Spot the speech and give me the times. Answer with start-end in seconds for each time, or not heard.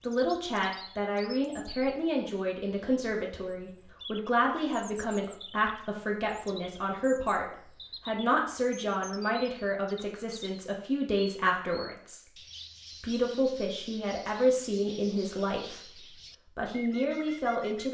0.1-12.3, 13.0-17.8.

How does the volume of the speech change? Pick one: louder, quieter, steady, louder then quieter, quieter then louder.
steady.